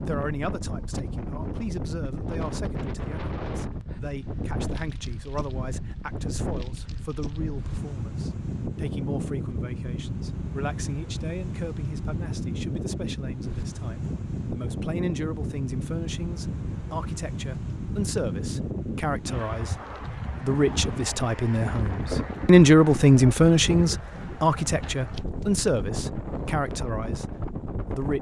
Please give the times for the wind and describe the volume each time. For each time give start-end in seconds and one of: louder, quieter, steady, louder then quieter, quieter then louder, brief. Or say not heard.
0.0-28.1 steady.